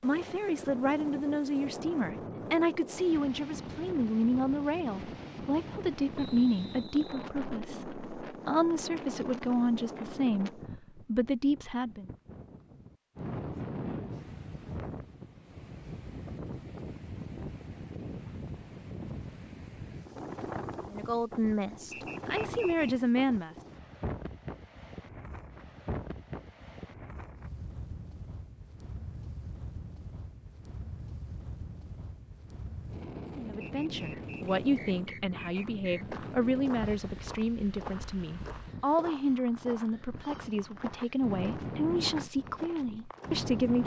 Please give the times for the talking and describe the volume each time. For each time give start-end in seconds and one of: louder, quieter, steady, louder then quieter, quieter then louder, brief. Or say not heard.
0.0-12.1 steady
20.9-23.6 brief
33.4-43.8 steady.